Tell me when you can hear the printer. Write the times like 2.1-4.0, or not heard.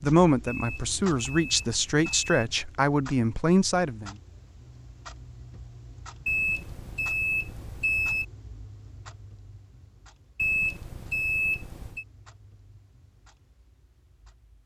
not heard.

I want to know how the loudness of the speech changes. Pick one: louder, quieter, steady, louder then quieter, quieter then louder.
louder.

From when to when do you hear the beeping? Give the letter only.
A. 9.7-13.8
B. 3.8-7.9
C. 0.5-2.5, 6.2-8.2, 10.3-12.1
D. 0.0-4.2
C.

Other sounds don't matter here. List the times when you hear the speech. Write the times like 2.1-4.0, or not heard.
0.0-4.2.